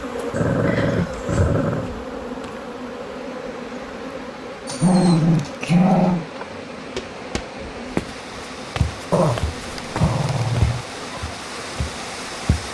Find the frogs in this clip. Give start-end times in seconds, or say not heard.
not heard.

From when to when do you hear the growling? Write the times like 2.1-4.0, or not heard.
0.3-1.9, 4.7-6.2, 9.1-10.8.